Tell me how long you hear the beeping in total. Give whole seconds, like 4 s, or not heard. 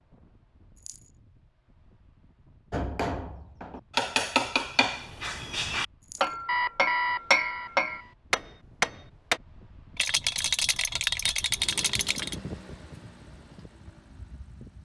2 s.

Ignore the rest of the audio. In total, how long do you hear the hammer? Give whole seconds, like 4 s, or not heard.
7 s.